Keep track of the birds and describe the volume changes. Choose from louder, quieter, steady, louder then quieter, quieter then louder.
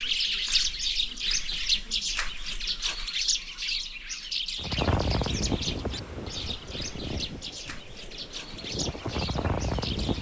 quieter.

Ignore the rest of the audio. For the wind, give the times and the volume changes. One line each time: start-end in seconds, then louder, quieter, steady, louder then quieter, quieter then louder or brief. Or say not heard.
4.5-10.1 quieter then louder.